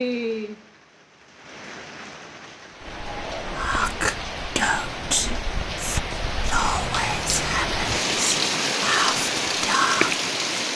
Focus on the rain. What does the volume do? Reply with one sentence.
The loudness of the rain goes up.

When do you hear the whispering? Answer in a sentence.
The whispering can be heard from 3.5 to 10.2 s.